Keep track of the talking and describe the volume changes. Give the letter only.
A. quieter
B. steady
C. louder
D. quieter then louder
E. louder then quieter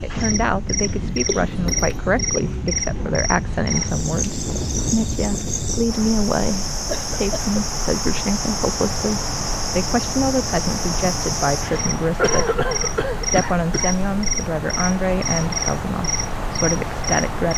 B.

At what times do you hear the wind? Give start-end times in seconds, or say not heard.
0.0-17.5.